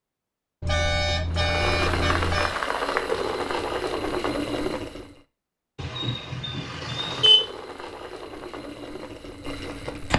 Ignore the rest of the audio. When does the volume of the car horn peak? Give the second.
7 s.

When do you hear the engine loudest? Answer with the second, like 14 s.
3 s.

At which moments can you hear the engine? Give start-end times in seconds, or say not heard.
1.3-5.2, 6.8-10.1.